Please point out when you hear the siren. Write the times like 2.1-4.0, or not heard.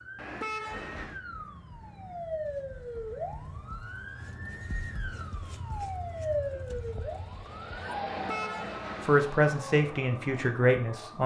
0.0-11.2.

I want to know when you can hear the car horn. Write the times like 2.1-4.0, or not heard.
0.1-1.2, 8.1-9.2.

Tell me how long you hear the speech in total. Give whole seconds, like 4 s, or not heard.
2 s.